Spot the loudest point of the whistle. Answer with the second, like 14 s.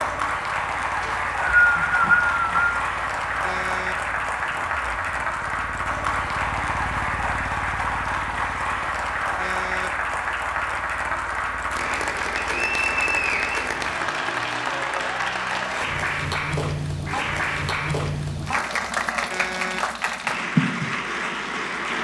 2 s.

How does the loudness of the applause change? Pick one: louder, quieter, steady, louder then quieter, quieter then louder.
steady.